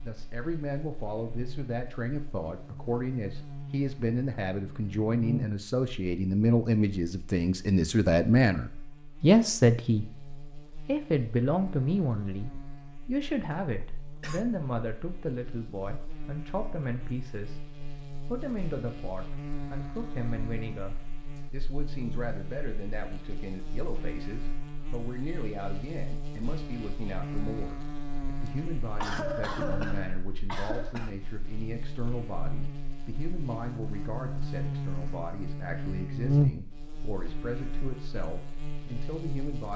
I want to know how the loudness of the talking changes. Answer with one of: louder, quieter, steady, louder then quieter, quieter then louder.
quieter.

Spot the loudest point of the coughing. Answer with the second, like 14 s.
29 s.